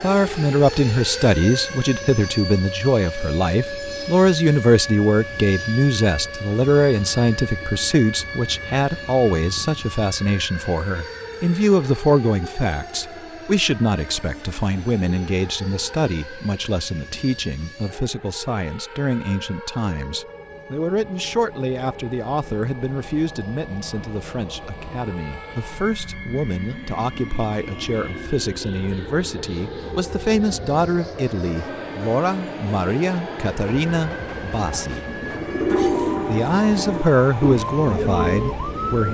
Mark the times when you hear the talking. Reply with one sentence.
The talking can be heard from 0.0 to 35.0 s and from 36.2 to 39.0 s.